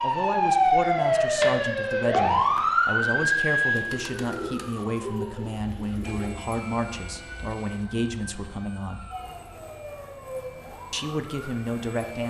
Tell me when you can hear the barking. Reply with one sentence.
The barking can't be heard in this clip.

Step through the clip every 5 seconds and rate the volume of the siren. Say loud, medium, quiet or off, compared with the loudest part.
loud, quiet, quiet.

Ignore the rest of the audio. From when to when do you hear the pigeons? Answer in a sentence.
The pigeons can be heard from 3.8 to 6.3 s.